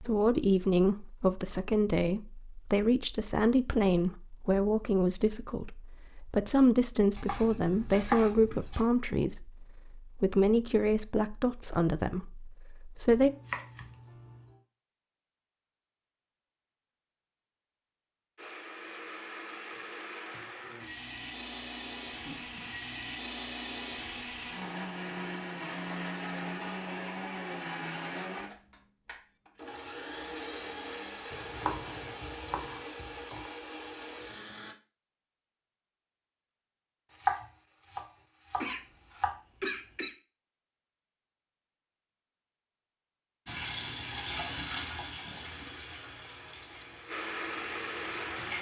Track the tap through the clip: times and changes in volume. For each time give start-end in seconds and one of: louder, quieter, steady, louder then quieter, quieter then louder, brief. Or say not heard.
43.5-48.5 quieter.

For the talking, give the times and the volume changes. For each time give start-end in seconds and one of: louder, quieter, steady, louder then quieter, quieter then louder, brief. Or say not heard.
0.0-13.3 steady.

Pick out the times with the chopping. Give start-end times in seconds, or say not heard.
7.2-8.8, 13.1-14.4, 31.3-33.5, 37.1-39.4.